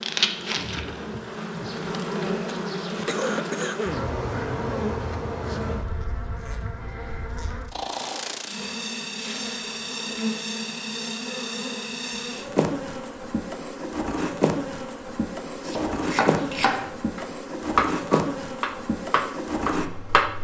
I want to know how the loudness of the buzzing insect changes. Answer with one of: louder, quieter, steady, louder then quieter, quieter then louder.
steady.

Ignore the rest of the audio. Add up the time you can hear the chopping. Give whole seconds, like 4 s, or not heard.
5 s.